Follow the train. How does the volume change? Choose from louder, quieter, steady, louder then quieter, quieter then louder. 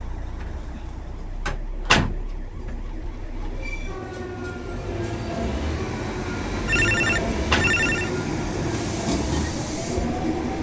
louder.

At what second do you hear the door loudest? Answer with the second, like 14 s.
2 s.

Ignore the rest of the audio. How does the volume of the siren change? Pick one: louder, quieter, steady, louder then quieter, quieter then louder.
louder.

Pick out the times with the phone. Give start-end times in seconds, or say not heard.
6.7-8.1.